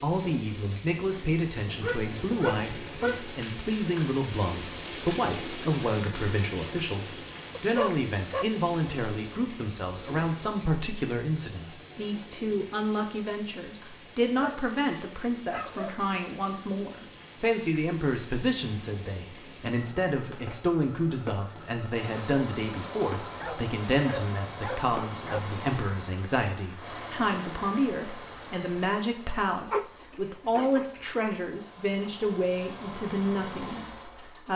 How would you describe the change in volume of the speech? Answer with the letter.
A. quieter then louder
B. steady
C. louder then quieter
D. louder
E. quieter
B.